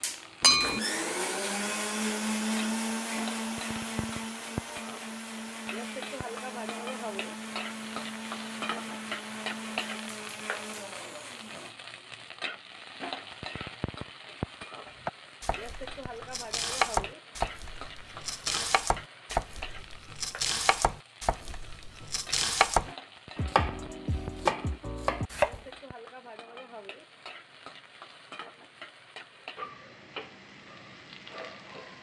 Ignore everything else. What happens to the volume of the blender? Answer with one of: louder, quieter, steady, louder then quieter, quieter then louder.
quieter.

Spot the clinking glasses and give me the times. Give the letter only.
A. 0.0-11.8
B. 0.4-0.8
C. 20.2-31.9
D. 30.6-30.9
B.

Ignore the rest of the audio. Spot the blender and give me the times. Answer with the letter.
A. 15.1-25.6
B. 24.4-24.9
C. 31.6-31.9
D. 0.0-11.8
D.